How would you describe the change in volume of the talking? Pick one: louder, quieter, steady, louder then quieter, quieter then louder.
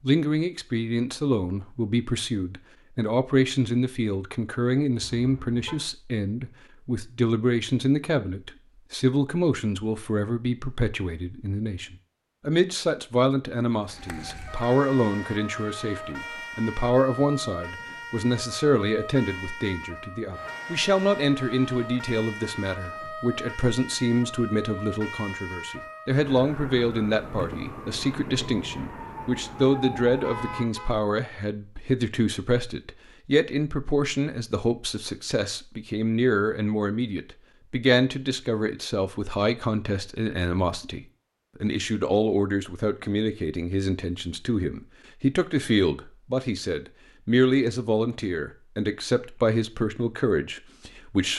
steady.